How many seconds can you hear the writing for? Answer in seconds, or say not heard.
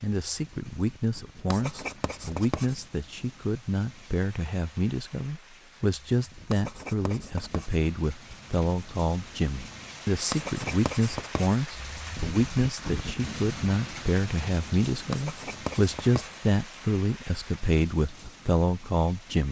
5 s.